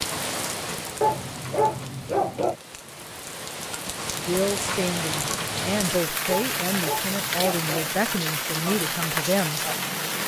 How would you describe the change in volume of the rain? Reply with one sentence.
The loudness of the rain goes up.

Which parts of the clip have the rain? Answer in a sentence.
You can hear the rain from 0.0 to 10.2 s.